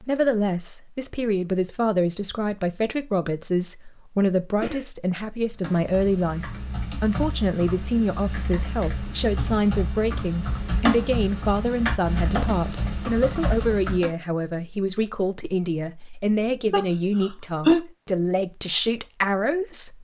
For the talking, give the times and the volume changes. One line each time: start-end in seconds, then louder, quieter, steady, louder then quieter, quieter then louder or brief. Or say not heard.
0.0-19.9 steady.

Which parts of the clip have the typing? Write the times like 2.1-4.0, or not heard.
5.5-14.1.